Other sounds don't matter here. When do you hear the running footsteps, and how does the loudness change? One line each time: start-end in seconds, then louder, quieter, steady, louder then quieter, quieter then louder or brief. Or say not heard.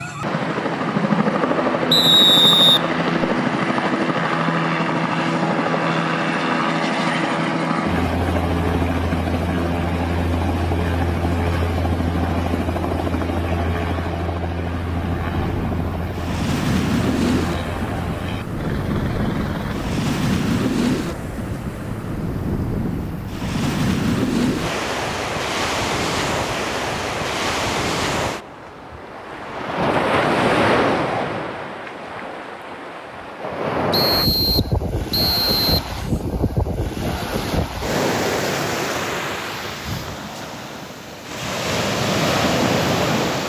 not heard.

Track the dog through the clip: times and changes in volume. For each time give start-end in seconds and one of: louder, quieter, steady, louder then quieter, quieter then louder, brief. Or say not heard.
not heard.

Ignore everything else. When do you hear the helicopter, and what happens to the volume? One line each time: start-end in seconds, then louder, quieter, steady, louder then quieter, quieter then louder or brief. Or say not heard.
0.0-20.1 quieter.